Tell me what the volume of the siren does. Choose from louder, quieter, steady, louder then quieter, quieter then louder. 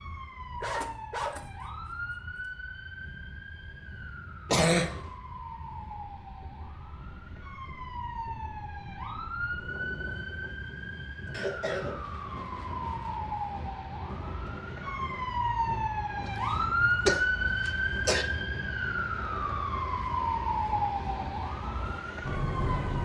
louder.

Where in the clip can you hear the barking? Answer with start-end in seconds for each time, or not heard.
0.6-2.5.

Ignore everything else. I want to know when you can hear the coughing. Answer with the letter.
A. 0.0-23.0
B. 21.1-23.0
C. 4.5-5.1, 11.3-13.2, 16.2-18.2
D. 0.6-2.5
C.